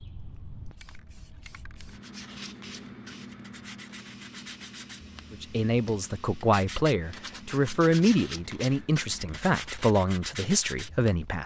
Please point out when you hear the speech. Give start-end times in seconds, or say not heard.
5.3-11.4.